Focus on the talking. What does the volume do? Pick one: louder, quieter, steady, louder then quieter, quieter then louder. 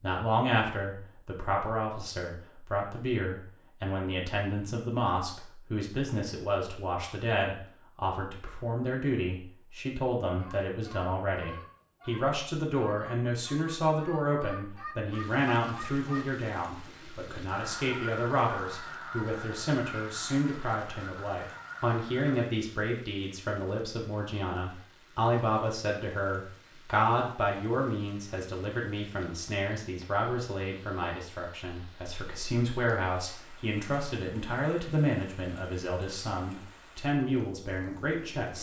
steady.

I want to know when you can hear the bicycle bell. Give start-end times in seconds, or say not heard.
not heard.